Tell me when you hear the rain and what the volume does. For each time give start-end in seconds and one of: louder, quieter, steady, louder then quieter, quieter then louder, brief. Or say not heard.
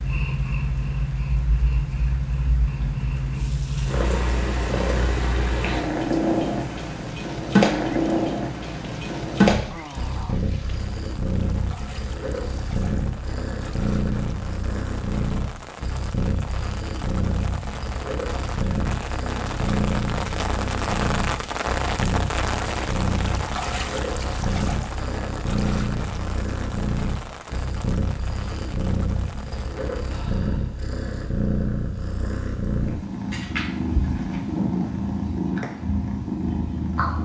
0.0-30.4 louder then quieter.